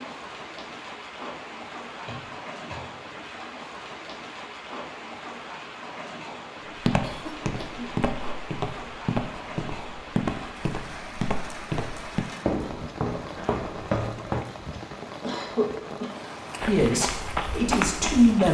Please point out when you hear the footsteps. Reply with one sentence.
The footsteps can be heard from 6.8 to 15.1 s and from 16.5 to 18.4 s.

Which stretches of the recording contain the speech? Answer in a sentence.
The speech can be heard from 16.6 to 18.4 s.